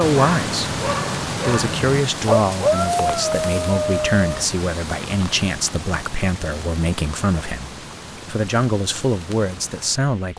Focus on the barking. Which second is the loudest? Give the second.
3 s.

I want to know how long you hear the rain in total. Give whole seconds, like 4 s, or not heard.
10 s.